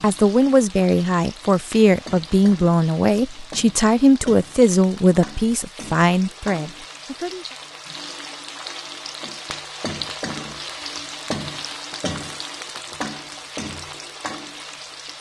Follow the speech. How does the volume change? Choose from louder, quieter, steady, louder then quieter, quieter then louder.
steady.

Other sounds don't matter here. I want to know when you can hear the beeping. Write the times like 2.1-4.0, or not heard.
not heard.